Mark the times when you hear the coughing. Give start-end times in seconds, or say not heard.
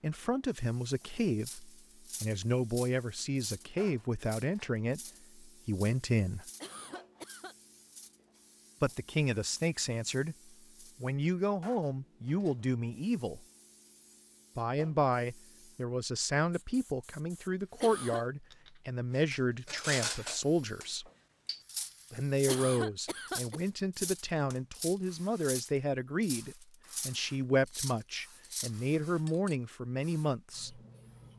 6.6-7.5, 17.8-18.2, 22.4-23.6.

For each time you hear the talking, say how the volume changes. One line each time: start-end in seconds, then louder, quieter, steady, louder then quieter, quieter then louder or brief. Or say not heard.
0.0-6.5 steady
8.8-10.3 brief
11.0-13.4 brief
14.6-21.1 steady
22.1-30.8 steady.